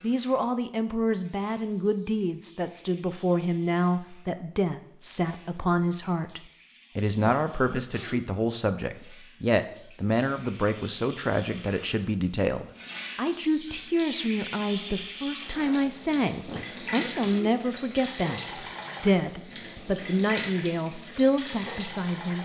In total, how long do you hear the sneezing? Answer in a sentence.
You can hear the sneezing for 2 seconds altogether.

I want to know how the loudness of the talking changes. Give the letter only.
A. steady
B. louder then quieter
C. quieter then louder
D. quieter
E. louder
A.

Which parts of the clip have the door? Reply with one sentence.
You can't hear the door here.